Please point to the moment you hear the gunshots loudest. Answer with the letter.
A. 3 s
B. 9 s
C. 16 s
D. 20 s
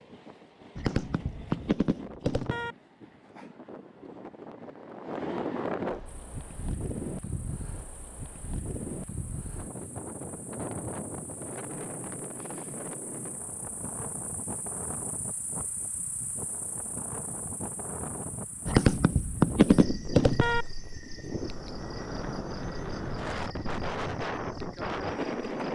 D.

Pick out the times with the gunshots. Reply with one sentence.
You can hear the gunshots from 0.8 to 2.8 s and from 18.6 to 20.6 s.